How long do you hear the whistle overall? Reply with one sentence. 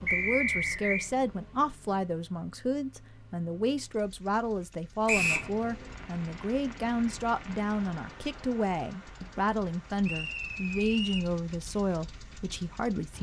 You can hear the whistle for 3 seconds altogether.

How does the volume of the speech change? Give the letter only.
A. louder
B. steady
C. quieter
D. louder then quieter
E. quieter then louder
B.